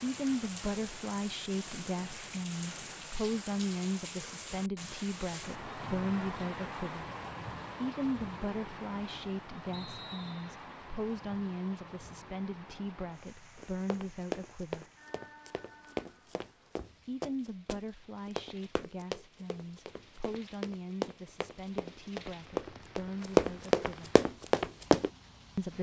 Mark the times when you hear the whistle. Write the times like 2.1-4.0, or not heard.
9.7-10.6.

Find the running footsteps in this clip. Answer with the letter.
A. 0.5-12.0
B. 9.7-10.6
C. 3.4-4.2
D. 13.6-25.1
D.